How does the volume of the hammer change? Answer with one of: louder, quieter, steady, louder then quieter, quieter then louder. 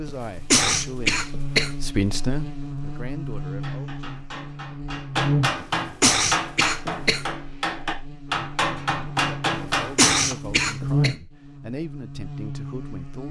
louder.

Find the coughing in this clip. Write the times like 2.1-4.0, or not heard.
0.1-1.7, 5.6-7.2, 9.6-11.2.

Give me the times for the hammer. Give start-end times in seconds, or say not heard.
3.4-10.3.